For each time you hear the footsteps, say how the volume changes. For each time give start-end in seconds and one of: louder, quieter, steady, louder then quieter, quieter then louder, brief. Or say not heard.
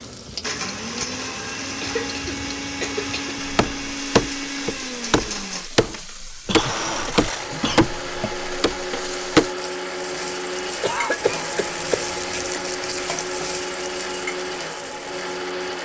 not heard.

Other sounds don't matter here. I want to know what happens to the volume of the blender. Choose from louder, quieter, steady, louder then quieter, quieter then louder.
steady.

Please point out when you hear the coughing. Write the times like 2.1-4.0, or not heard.
1.7-3.2, 6.5-8.2, 10.8-12.1.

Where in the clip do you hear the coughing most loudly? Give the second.
11 s.